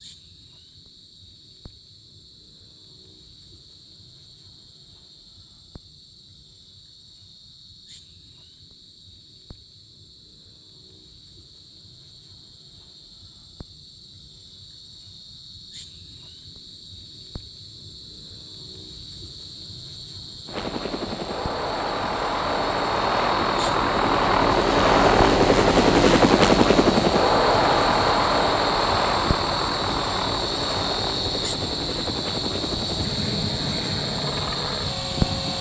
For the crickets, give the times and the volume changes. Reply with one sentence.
The crickets can be heard from 0.0 to 35.5 s, getting louder.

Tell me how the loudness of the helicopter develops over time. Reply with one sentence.
The volume of the helicopter goes up, then down.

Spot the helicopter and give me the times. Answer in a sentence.
The helicopter can be heard from 20.4 to 35.5 s.